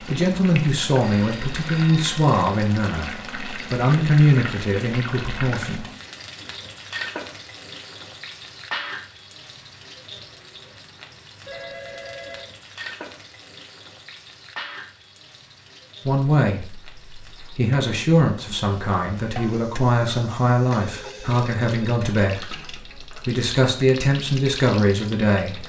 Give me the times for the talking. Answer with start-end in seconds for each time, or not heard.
0.0-5.8, 16.1-25.6.